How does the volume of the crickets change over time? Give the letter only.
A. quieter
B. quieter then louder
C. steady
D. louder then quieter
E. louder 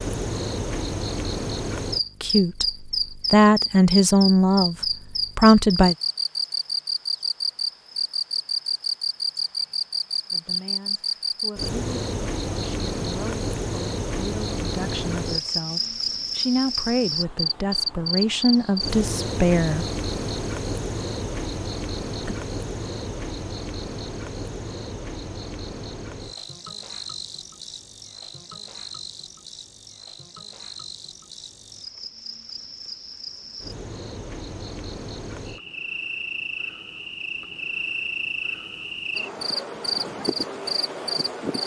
B.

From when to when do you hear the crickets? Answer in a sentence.
The crickets can be heard from 0.0 to 41.6 s.